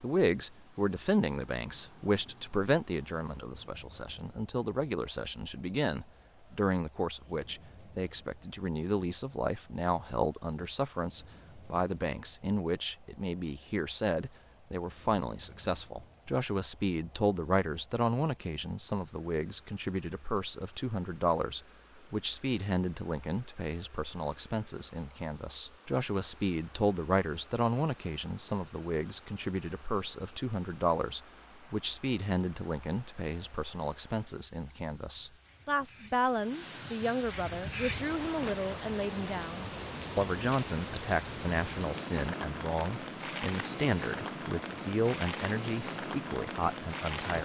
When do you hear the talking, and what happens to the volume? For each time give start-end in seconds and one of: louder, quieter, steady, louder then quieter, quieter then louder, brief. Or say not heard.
0.0-47.3 steady.